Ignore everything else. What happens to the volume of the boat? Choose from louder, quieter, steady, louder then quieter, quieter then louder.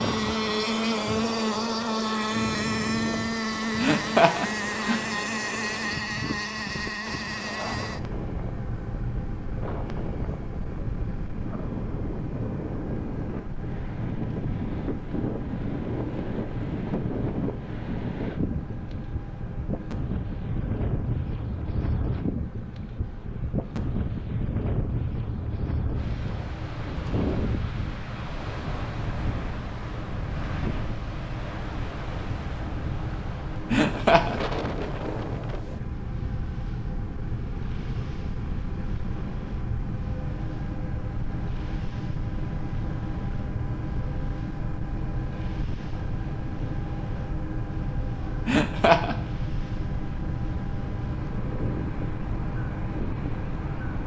quieter then louder.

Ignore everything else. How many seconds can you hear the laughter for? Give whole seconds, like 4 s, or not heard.
3 s.